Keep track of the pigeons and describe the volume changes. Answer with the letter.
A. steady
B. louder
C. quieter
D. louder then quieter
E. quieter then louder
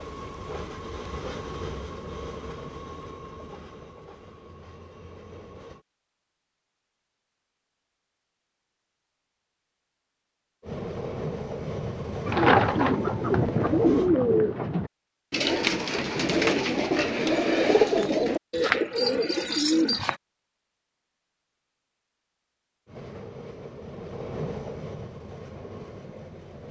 A.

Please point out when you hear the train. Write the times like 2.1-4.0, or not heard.
0.0-5.8, 10.6-14.1, 22.9-26.6.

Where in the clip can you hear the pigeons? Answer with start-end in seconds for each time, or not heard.
12.2-20.1.